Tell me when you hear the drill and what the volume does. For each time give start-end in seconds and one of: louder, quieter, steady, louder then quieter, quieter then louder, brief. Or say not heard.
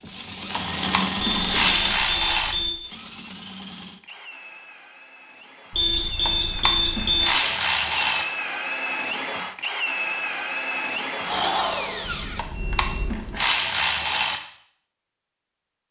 0.0-12.4 quieter then louder.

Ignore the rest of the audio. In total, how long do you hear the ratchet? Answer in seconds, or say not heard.
6 s.